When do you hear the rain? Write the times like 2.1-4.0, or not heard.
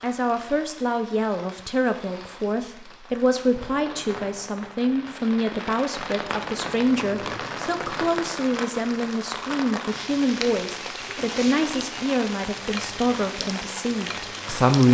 0.0-14.8.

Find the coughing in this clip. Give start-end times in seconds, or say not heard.
not heard.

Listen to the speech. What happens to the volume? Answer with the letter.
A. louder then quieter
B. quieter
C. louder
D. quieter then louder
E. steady
E.